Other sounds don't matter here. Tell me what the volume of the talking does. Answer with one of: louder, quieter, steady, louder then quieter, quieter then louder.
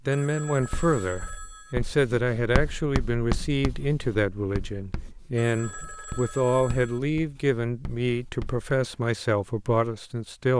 steady.